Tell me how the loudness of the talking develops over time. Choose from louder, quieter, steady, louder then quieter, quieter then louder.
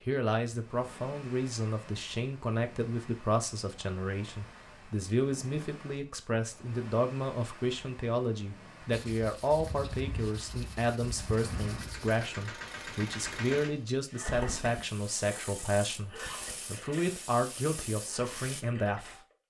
steady.